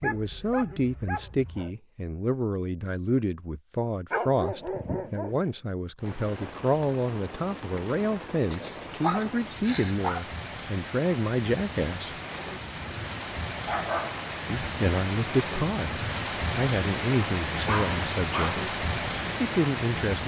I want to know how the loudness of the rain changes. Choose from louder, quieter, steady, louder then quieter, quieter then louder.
louder.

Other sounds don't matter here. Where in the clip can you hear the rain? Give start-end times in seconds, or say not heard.
6.0-20.2.